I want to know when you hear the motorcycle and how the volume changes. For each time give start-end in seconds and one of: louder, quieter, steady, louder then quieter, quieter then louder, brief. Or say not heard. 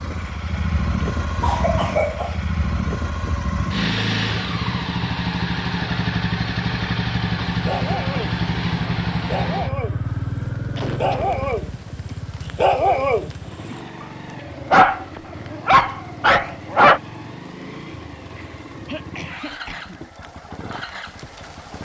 0.0-21.7 quieter.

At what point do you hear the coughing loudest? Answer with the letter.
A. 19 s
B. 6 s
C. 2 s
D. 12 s
C.